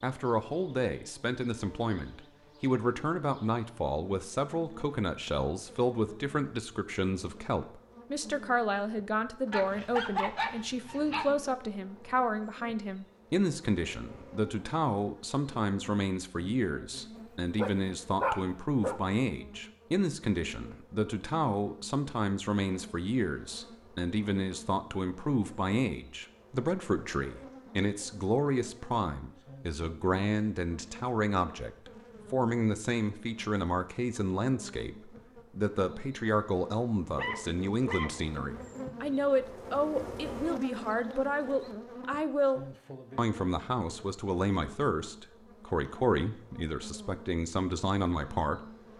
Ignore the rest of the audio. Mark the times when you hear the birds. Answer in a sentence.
You can't hear the birds here.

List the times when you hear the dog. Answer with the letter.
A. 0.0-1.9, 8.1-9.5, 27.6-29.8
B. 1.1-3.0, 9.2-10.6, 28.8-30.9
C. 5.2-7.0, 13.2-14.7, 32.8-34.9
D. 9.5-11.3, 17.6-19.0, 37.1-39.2
D.